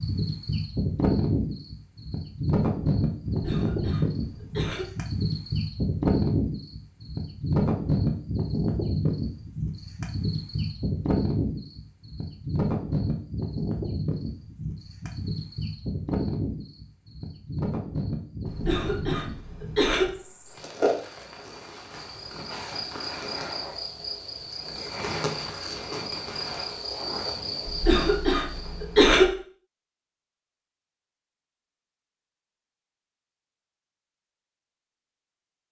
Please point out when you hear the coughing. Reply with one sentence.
The coughing can be heard from 3.2 to 4.8 s, from 18.4 to 20.1 s and from 27.6 to 29.2 s.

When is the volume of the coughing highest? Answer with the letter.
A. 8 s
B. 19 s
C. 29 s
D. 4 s
C.